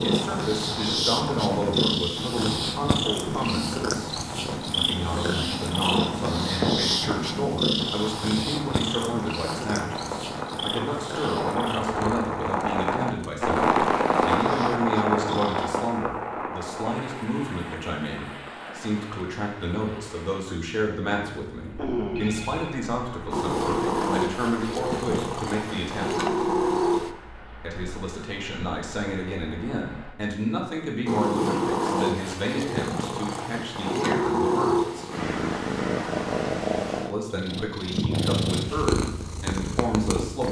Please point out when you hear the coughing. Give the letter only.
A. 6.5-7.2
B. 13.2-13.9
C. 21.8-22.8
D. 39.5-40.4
A.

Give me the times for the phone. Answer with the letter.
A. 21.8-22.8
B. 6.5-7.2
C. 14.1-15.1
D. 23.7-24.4
A.